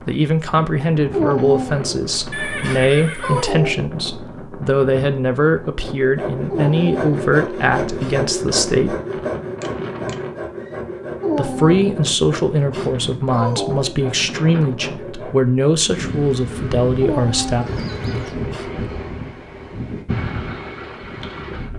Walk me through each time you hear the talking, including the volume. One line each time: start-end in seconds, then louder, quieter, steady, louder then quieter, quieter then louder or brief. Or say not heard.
0.1-8.9 steady
11.3-17.6 steady.